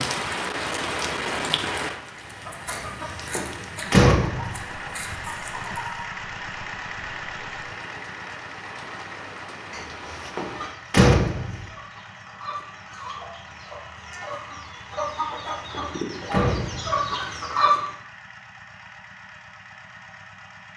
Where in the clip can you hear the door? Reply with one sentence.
The door can be heard from 2.7 to 4.7 s, from 9.7 to 11.7 s and from 15.1 to 17.1 s.